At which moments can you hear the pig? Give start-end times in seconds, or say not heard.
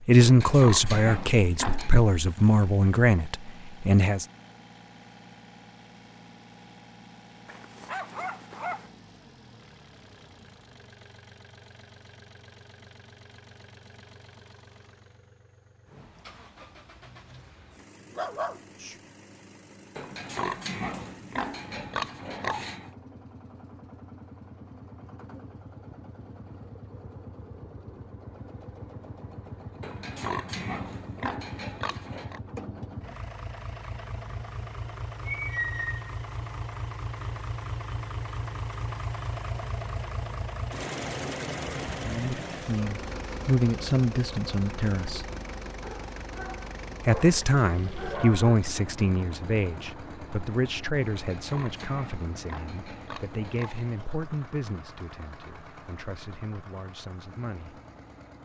0.2-1.9, 19.9-22.9, 29.8-32.4, 51.1-53.9.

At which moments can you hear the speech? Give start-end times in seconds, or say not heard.
0.1-4.2, 42.0-45.2, 47.0-57.8.